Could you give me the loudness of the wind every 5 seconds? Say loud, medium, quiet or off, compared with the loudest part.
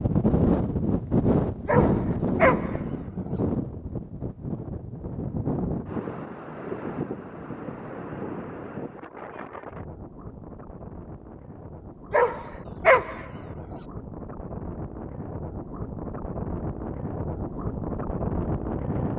loud, medium, quiet, medium.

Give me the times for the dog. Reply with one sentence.
You can hear the dog from 1.6 to 3.4 s and from 12.1 to 13.8 s.